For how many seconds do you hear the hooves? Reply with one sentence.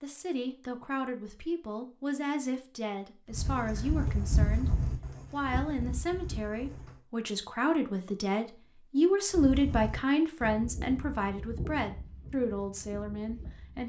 The hooves can be heard for 8 seconds in total.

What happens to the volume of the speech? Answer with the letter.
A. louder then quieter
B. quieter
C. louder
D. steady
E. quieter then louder
A.